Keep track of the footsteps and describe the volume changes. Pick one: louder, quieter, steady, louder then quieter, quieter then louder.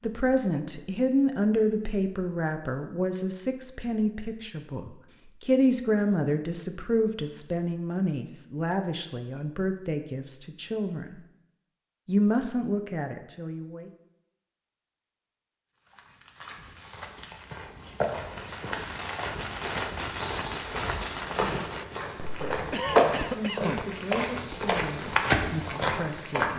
louder.